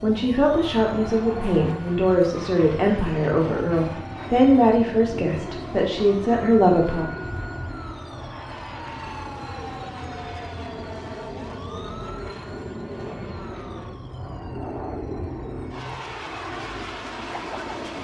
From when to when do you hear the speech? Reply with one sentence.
You can hear the speech from 0.0 to 7.1 s.